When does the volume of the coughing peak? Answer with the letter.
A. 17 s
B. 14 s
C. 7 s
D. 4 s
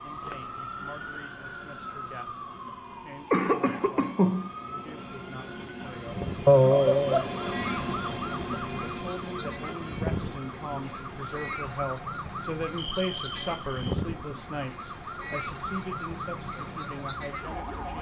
C.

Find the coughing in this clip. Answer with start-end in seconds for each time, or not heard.
3.3-4.5, 6.5-7.2, 12.8-14.1.